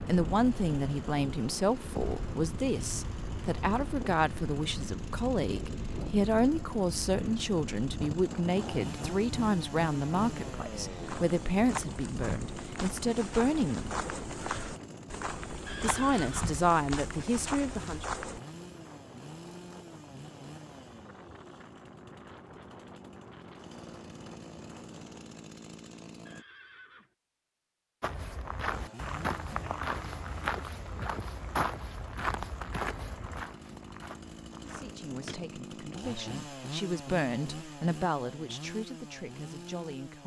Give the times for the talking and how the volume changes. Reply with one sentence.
You can hear the talking from 0.0 to 13.9 s, at a steady volume; briefly from 15.8 to 18.1 s; and from 34.6 to 40.2 s, getting louder then quieter.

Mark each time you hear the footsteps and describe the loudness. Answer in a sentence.
You can hear the footsteps from 11.1 to 18.4 s, at a steady volume; and from 28.0 to 35.4 s, getting quieter.